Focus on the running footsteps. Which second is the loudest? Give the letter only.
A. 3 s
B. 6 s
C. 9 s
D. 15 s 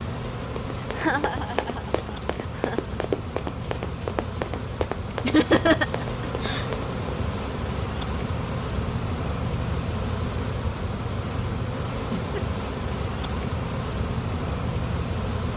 A.